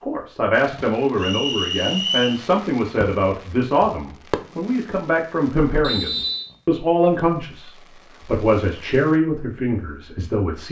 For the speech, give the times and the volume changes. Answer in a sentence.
The speech can be heard from 0.0 to 10.6 s, at a steady volume.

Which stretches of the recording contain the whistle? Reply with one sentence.
The whistle can be heard from 1.1 to 2.4 s and from 5.8 to 6.5 s.